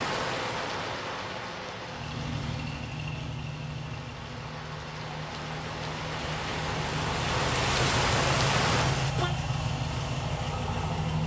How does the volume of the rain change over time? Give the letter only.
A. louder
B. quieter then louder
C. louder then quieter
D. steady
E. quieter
B.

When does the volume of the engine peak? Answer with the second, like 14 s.
9 s.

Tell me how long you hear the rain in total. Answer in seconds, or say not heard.
9 s.